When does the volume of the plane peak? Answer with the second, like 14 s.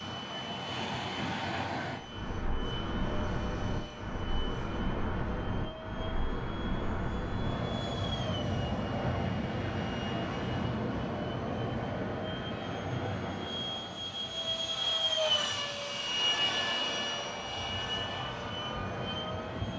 15 s.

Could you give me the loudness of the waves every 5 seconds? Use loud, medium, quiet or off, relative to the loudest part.
loud, loud, loud, medium.